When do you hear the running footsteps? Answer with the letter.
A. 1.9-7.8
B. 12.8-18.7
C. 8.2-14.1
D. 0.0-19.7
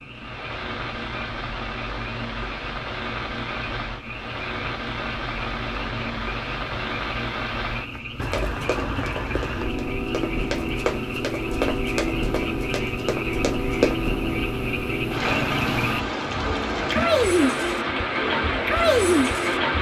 C.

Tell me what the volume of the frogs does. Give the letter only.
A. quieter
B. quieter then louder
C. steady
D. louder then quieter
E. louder
E.